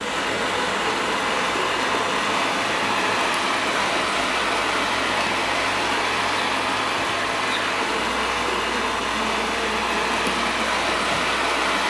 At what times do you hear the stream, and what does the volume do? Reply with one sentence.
You can hear the stream from 0.0 to 11.8 s, at a steady volume.